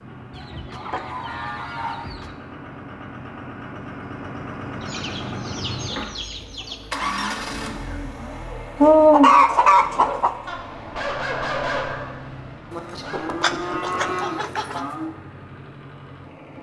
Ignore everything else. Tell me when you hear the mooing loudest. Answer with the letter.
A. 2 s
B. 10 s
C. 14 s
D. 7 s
C.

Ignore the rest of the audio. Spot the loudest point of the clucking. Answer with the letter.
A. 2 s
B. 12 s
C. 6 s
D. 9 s
D.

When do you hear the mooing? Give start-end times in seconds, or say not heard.
0.8-2.1, 7.0-8.7, 12.7-15.1.